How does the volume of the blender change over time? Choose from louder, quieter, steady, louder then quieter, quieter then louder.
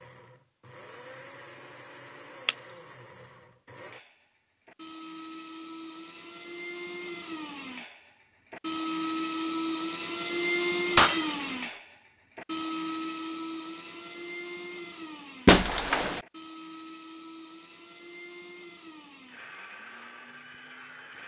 louder then quieter.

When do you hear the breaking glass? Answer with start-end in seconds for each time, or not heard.
10.9-11.8, 15.4-16.2.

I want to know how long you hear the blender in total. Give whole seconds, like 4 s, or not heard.
21 s.